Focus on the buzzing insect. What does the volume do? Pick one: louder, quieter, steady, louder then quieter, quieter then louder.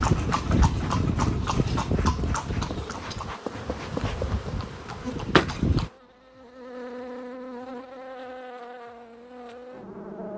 louder then quieter.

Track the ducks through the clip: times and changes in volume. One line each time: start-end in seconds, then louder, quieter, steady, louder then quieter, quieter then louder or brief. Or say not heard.
not heard.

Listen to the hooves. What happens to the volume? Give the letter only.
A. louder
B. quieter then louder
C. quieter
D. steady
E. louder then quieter
C.